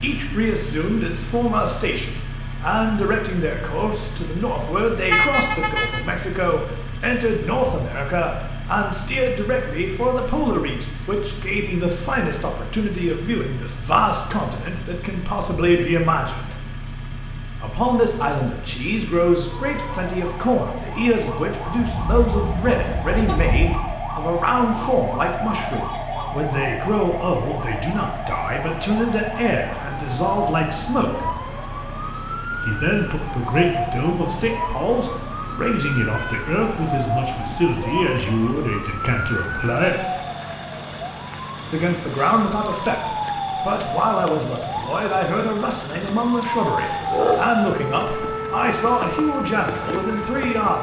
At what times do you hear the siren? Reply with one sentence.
The siren can be heard from 19.4 to 50.7 s.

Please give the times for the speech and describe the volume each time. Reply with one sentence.
You can hear the speech from 0.0 to 16.6 s, at a steady volume; from 17.6 to 31.3 s, at a steady volume; from 32.6 to 40.1 s, at a steady volume; and from 41.7 to 50.7 s, at a steady volume.